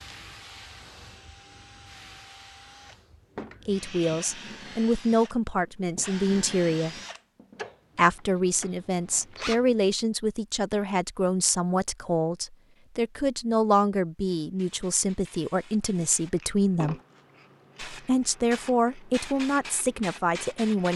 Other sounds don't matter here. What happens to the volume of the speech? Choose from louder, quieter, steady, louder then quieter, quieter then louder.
steady.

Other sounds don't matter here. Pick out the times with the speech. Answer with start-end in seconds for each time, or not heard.
3.6-7.0, 8.0-16.9, 17.9-20.9.